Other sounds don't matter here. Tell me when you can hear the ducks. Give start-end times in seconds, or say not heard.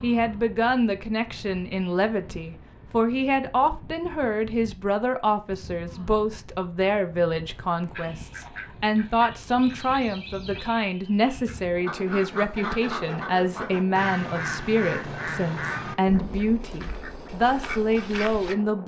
7.9-18.6.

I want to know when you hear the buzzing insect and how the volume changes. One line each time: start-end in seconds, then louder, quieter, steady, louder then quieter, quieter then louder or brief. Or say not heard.
not heard.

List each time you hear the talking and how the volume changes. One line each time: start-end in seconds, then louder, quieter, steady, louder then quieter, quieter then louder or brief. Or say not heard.
0.0-18.8 steady.